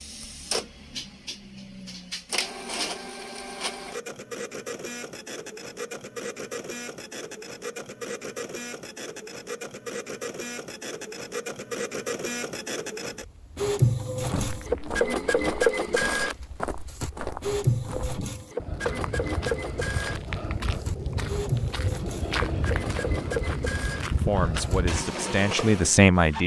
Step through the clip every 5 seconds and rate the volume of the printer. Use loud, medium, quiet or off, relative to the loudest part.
medium, medium, loud, loud, medium, medium.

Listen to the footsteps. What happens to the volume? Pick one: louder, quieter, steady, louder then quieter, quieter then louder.
louder.